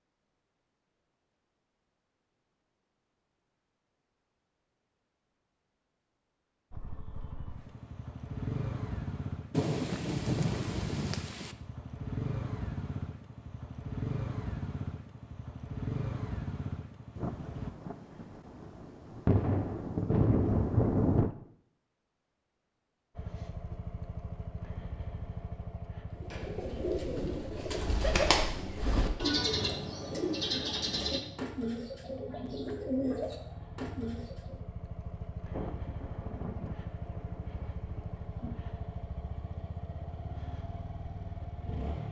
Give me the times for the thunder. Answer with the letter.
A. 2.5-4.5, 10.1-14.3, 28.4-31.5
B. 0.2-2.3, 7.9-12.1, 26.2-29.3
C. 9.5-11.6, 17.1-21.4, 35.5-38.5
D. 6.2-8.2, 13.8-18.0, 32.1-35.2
C.